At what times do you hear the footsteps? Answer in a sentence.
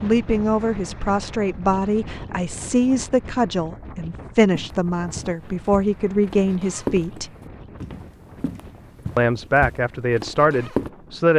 The footsteps can be heard from 4.5 to 10.9 s.